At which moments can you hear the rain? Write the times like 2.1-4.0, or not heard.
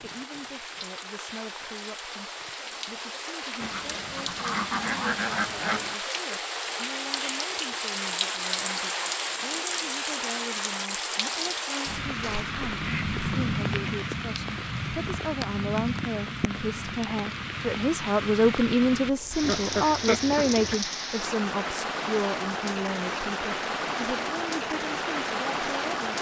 0.0-26.1.